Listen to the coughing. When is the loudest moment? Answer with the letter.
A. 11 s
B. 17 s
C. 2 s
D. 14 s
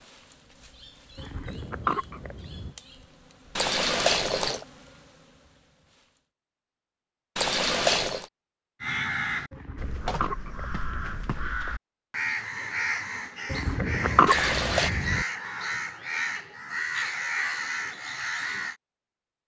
D.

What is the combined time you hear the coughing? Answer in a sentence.
You can hear the coughing for 5 seconds altogether.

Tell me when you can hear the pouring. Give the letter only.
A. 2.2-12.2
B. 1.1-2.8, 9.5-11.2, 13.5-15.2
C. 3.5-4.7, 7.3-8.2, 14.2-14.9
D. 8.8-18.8
C.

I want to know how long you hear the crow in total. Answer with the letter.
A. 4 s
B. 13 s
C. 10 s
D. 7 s
C.